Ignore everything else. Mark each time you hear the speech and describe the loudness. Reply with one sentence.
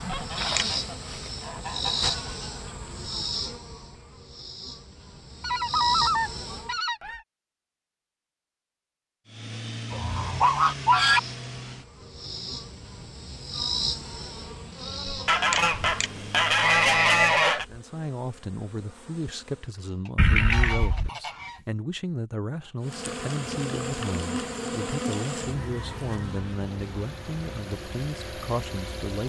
You can hear the speech from 17.6 to 29.2 s, at a steady volume.